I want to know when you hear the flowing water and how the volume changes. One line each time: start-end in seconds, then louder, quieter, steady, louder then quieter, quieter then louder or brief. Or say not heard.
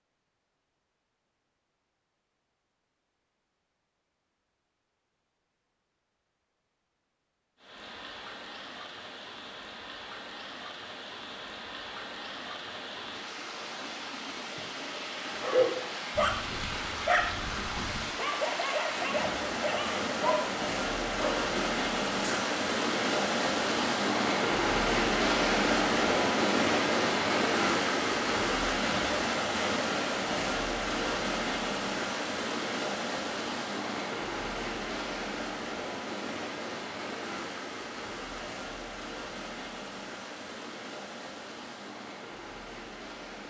7.5-43.4 louder then quieter.